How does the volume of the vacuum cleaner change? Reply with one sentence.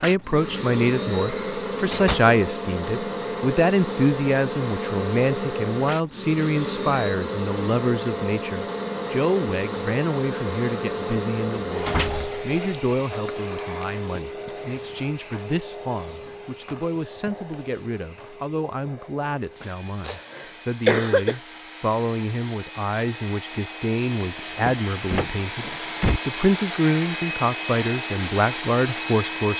The loudness of the vacuum cleaner goes down, then up.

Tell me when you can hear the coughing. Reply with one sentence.
The coughing can be heard from 19.6 to 21.4 s.